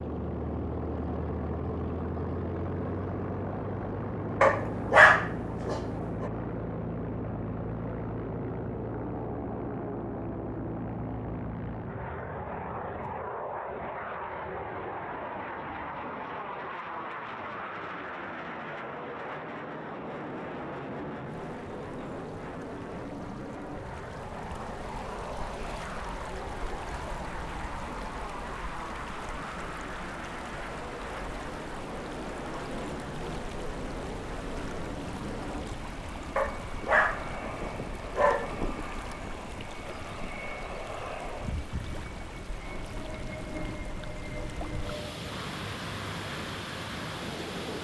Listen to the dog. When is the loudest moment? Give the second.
5 s.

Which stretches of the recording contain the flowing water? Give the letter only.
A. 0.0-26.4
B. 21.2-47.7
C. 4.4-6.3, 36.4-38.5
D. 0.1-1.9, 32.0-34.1
B.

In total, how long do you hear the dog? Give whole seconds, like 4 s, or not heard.
4 s.